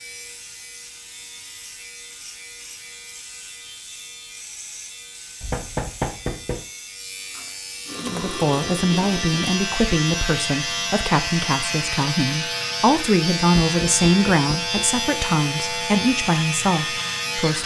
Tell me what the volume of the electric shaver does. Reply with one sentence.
The volume of the electric shaver goes up.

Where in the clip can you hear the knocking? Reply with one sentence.
You can hear the knocking from 5.4 to 6.7 s and from 13.6 to 14.9 s.